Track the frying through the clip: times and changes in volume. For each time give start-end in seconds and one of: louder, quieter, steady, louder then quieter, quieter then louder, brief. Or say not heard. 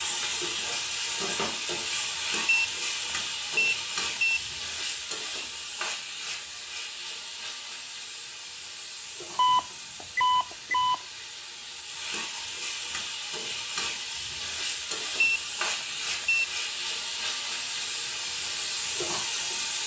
0.0-19.8 quieter then louder.